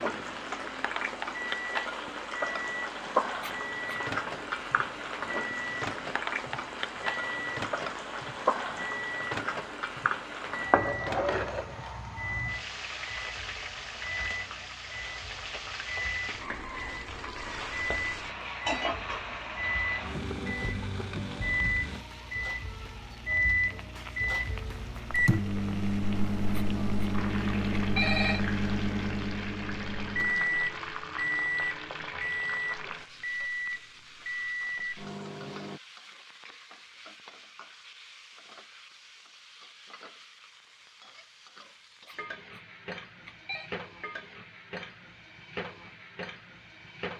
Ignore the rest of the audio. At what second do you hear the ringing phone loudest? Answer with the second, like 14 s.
28 s.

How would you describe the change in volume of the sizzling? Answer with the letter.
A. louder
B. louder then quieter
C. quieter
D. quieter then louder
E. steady
C.